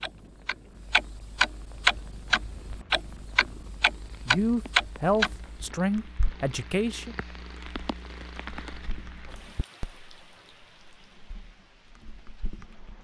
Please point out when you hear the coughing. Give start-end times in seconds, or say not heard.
not heard.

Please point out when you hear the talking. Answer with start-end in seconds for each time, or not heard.
4.2-7.2.